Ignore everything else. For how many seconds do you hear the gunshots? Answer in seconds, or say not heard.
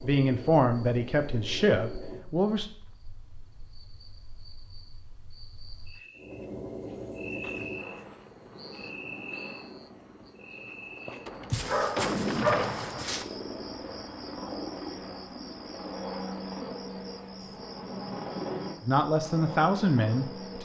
2 s.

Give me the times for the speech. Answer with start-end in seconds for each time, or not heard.
0.0-2.6, 18.8-20.5.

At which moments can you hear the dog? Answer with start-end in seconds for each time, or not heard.
11.5-13.2.